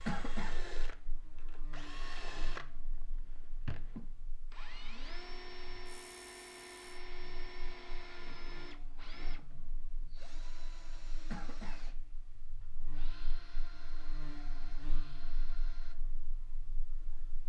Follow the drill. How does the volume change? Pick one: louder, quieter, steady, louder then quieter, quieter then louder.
quieter.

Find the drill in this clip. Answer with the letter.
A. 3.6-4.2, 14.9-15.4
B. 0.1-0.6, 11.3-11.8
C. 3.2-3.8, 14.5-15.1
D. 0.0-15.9
D.